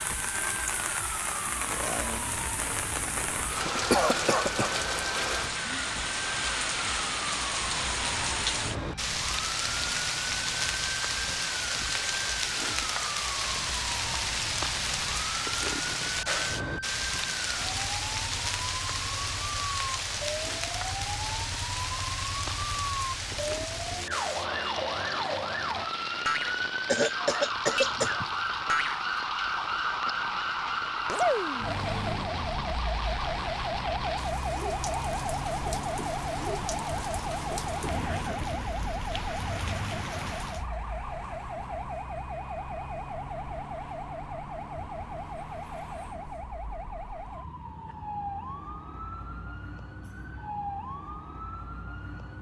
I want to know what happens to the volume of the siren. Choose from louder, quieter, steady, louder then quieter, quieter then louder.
louder then quieter.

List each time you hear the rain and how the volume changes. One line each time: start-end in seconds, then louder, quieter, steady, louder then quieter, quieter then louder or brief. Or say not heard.
0.0-40.7 quieter.